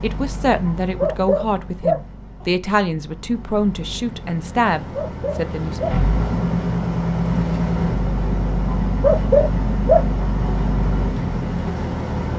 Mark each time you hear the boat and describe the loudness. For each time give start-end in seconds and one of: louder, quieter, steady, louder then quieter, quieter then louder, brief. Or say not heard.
0.0-12.3 louder.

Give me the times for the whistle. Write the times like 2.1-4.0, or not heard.
not heard.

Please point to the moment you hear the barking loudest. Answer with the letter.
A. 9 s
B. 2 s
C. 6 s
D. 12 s
A.